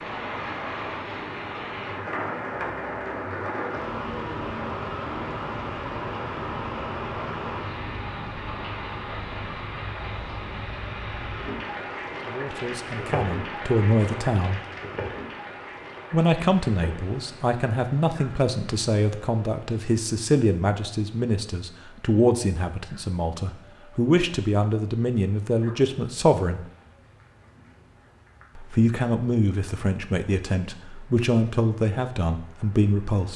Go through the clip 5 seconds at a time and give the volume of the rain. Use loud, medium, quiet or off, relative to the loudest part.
loud, loud, loud, medium, quiet, quiet, quiet.